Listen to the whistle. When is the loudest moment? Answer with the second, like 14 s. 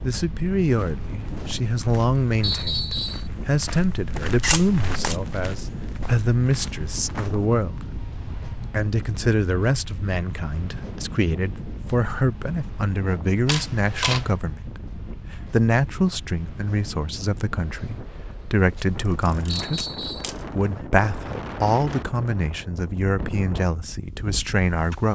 3 s.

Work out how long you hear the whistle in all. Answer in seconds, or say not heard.
2 s.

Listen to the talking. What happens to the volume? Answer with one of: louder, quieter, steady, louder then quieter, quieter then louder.
steady.